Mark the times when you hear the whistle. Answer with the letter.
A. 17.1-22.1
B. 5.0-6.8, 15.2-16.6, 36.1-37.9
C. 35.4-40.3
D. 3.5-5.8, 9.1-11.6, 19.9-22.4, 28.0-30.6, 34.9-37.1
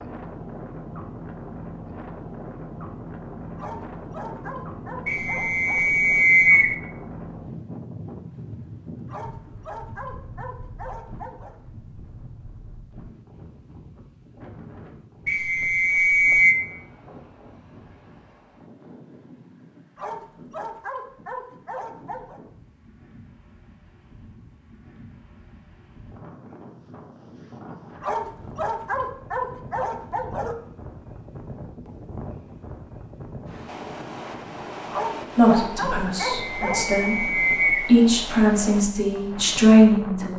B.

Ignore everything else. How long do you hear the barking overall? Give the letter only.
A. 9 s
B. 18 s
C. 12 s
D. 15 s
C.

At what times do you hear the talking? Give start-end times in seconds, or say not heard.
35.4-40.3.